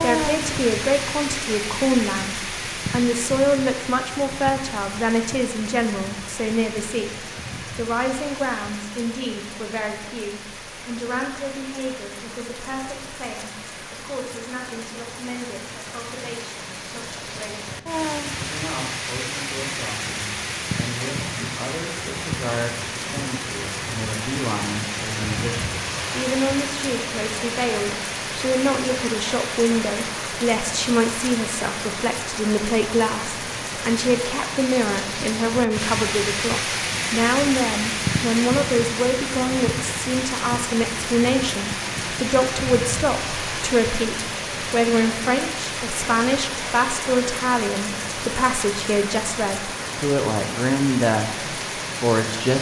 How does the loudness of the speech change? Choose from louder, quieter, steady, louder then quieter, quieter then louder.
quieter then louder.